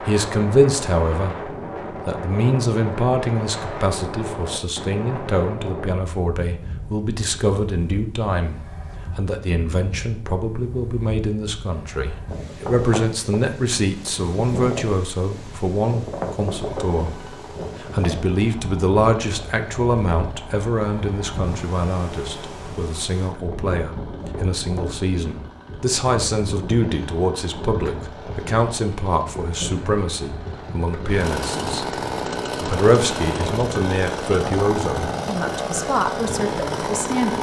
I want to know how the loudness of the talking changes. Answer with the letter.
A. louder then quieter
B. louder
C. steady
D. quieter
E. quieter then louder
C.